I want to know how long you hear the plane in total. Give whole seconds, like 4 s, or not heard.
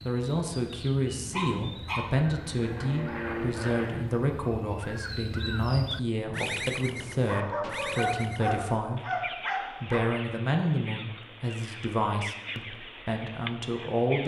2 s.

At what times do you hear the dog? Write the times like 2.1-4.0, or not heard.
1.3-2.0, 7.2-10.0.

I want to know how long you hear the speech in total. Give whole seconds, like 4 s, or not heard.
14 s.